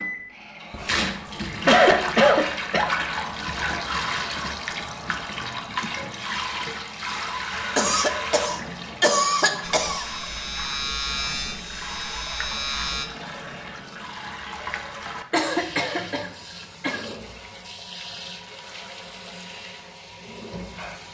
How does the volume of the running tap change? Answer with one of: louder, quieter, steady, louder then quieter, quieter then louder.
quieter.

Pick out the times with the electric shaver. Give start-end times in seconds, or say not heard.
9.6-13.1.